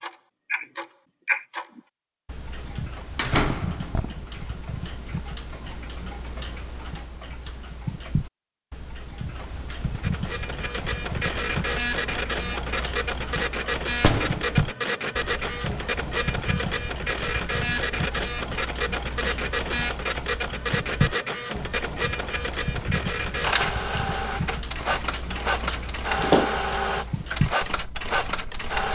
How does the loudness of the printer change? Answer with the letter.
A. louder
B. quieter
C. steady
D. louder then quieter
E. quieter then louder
C.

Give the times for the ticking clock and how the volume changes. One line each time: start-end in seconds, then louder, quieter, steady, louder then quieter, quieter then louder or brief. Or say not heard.
0.0-28.8 steady.